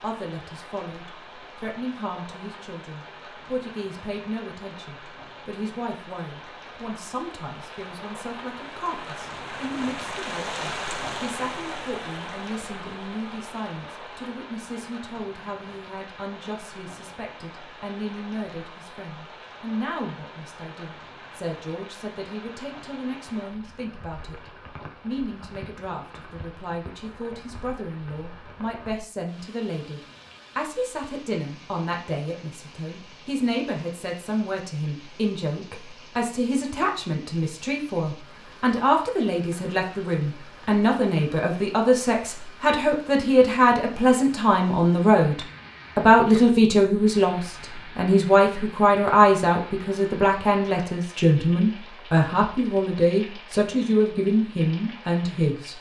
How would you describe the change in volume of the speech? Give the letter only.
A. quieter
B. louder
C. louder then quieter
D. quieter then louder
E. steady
B.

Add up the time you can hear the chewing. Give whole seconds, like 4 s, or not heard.
not heard.